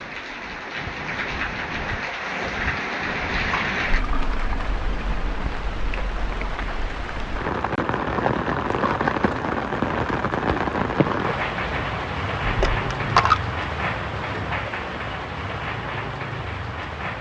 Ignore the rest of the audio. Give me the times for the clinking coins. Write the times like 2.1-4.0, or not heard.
12.4-13.4.